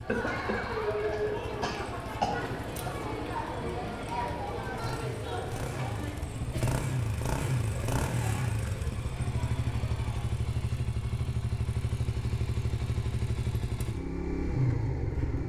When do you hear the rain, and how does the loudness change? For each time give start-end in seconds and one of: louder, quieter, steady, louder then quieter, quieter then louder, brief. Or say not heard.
not heard.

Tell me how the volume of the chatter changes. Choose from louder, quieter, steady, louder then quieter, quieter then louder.
quieter.